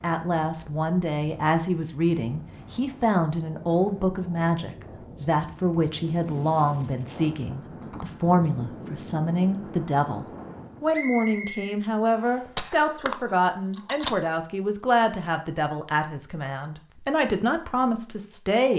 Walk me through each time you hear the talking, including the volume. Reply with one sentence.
The talking can be heard from 0.0 to 18.7 s, at a steady volume.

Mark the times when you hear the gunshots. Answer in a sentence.
The gunshots can be heard from 12.4 to 14.2 s.